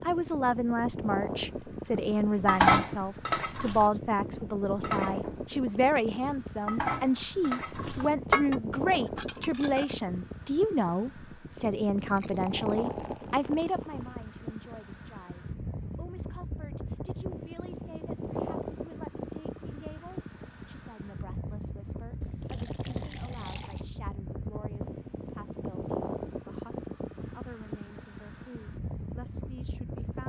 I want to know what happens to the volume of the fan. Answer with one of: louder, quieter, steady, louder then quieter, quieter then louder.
steady.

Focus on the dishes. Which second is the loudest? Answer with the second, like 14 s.
3 s.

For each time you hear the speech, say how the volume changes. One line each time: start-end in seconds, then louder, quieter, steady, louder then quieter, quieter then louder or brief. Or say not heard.
0.0-30.2 quieter.